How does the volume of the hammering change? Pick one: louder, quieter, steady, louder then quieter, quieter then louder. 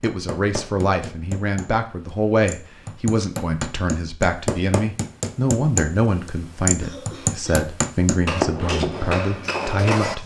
louder.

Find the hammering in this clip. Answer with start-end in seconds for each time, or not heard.
0.0-10.2.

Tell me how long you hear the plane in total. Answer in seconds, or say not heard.
not heard.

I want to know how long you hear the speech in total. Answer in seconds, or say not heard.
10 s.